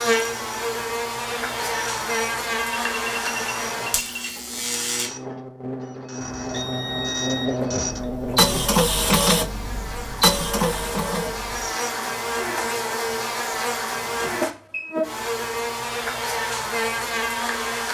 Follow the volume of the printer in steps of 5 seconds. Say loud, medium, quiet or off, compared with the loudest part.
quiet, loud, loud, off.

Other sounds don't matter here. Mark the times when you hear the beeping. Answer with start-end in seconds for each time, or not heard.
2.7-4.3, 6.2-8.1, 14.1-14.9.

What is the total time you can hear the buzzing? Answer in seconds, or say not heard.
18 s.